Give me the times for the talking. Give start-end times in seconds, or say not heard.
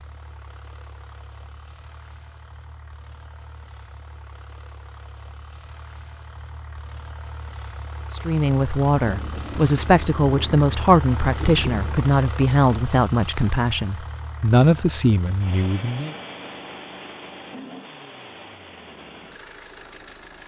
8.1-16.1.